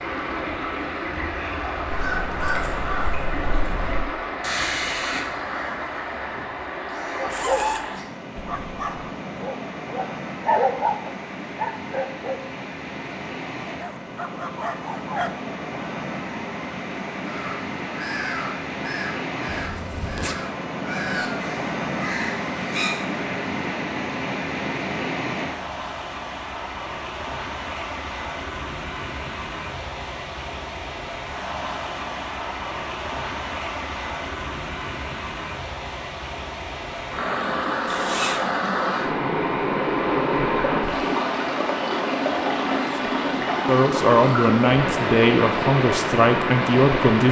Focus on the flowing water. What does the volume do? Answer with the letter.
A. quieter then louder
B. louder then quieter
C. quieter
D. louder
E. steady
D.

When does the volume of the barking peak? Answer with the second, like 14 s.
11 s.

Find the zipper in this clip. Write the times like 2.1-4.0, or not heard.
7.3-7.8, 19.5-20.4, 37.9-38.5.